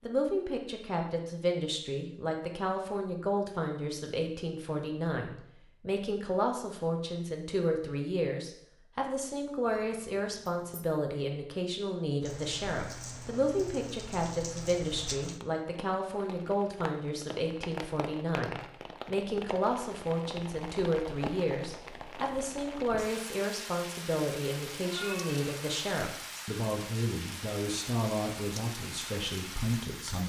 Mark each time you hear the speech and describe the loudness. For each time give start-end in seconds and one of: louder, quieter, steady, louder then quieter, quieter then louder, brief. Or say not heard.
0.0-30.2 steady.